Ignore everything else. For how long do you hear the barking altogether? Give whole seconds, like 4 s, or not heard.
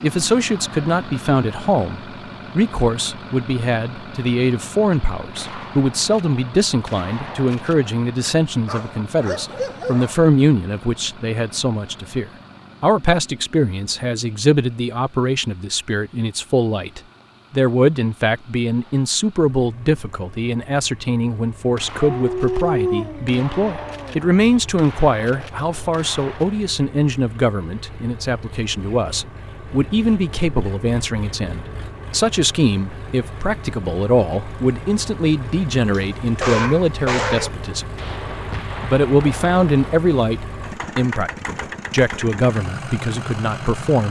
5 s.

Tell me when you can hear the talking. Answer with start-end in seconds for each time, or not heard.
0.0-37.9, 38.8-44.0.